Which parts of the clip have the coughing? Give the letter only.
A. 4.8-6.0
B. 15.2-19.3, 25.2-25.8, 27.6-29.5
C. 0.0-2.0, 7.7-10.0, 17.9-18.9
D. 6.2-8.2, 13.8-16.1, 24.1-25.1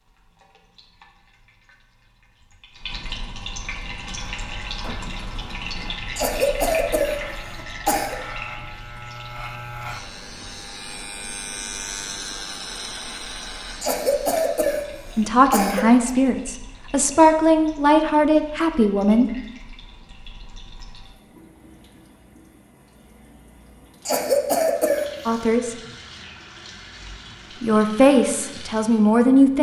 D.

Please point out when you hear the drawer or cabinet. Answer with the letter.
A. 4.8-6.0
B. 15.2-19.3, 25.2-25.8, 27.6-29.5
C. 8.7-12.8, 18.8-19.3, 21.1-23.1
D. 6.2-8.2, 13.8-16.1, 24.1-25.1
A.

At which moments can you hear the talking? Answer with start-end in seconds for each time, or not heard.
15.2-19.3, 25.2-25.8, 27.6-29.5.